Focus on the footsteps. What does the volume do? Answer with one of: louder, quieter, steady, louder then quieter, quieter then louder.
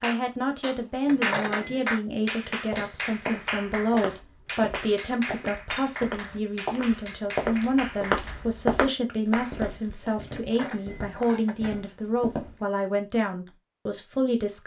louder then quieter.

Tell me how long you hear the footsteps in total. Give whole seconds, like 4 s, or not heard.
10 s.